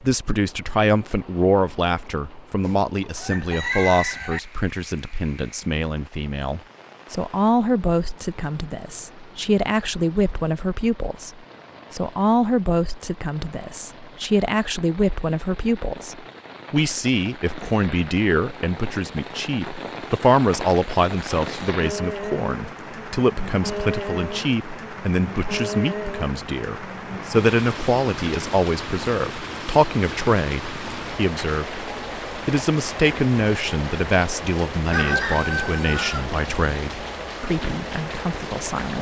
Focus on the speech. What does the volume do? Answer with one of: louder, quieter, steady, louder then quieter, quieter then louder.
steady.